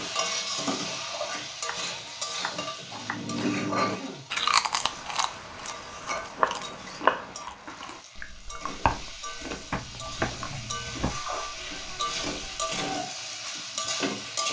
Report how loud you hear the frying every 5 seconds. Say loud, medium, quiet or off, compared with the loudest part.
loud, medium, loud.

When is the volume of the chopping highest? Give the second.
7 s.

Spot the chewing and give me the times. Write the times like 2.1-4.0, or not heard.
2.9-12.8.